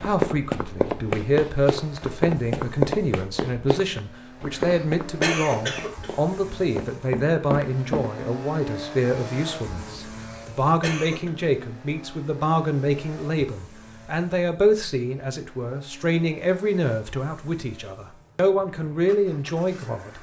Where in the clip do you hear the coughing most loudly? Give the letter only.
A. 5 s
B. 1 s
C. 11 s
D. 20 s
A.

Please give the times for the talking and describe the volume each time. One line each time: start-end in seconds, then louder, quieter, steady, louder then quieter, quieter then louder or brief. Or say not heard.
0.0-20.1 steady.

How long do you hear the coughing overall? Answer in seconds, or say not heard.
3 s.